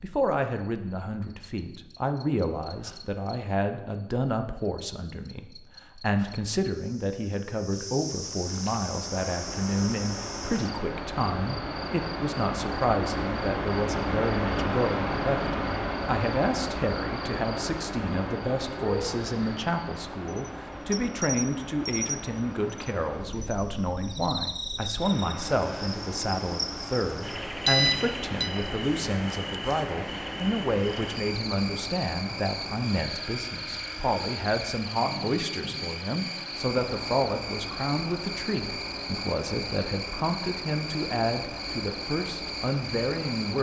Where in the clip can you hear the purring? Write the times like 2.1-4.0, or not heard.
not heard.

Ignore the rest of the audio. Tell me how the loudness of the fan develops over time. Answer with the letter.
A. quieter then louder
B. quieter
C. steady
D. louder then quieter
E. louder
B.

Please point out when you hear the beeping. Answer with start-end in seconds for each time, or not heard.
27.3-28.5.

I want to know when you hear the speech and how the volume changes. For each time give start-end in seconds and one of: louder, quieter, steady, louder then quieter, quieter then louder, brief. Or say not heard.
0.0-43.5 steady.